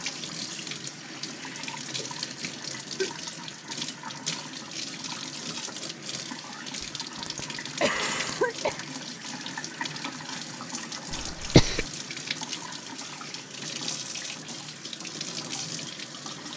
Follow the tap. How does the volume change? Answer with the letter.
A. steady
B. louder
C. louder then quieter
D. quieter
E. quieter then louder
A.